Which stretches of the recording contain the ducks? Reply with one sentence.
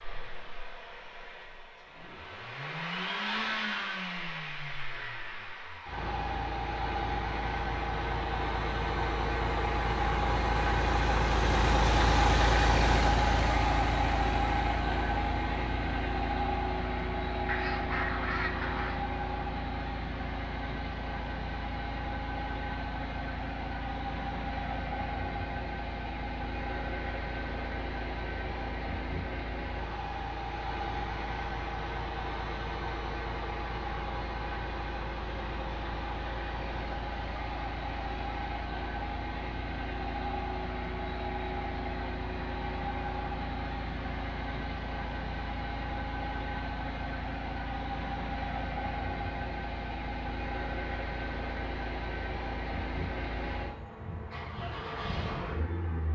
The ducks can be heard from 17.4 to 19.0 s.